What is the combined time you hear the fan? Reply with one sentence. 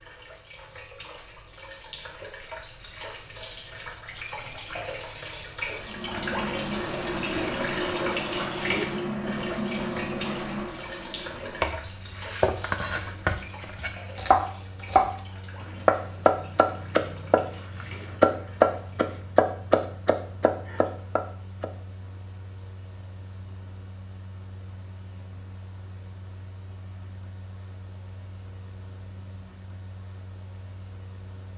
The fan can be heard for 26 seconds in total.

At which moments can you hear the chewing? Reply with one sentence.
You can't hear the chewing here.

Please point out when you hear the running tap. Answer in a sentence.
The running tap can be heard from 0.0 to 19.1 s.